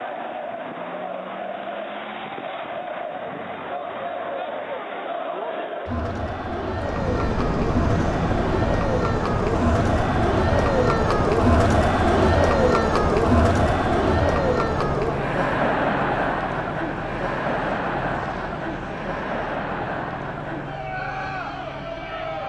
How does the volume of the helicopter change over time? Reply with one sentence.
The volume of the helicopter goes down.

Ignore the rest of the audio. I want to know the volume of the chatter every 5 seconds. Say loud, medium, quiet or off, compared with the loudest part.
medium, medium, loud, medium, medium.